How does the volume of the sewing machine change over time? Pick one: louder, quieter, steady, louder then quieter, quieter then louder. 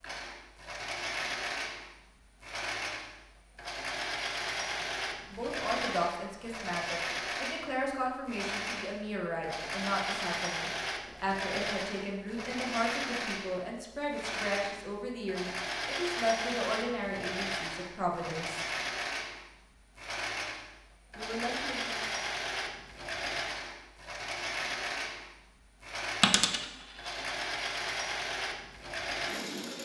steady.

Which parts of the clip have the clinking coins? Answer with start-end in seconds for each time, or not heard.
26.2-27.3.